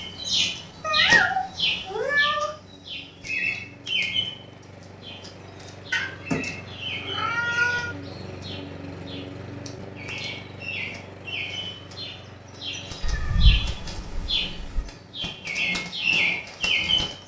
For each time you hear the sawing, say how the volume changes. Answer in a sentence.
The sawing can't be heard in this clip.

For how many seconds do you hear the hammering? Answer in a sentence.
You can't hear the hammering here.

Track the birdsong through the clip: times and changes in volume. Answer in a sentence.
You can hear the birdsong from 0.0 to 17.2 s, getting quieter then louder.